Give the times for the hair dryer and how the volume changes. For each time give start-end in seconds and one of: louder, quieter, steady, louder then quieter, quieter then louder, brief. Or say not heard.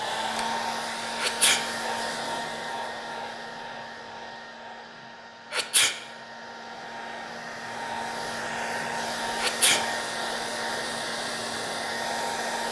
0.0-12.6 quieter then louder.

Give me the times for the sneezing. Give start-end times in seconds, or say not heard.
1.1-1.6, 5.5-6.0, 9.3-9.8.